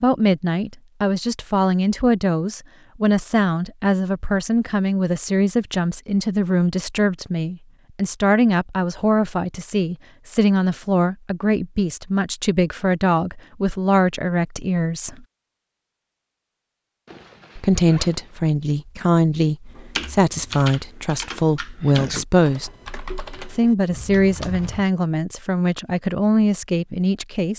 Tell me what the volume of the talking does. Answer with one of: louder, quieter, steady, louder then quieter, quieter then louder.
steady.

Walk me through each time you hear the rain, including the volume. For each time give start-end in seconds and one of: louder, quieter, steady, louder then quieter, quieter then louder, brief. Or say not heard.
not heard.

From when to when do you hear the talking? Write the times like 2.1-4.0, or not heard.
0.0-15.2, 17.6-22.7, 23.6-27.5.